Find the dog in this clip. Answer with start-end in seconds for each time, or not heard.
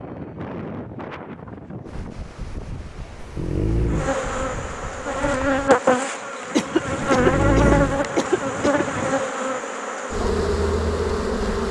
3.1-4.2, 7.1-8.1.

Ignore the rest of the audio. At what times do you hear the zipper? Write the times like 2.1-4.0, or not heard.
not heard.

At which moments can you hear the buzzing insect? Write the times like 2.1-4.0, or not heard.
3.9-11.6.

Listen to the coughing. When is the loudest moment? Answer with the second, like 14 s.
7 s.